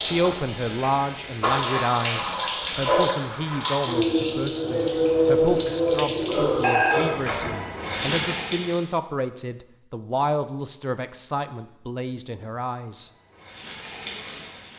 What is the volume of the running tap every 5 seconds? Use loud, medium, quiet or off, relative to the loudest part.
loud, loud, quiet.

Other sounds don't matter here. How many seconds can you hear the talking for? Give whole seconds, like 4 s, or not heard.
13 s.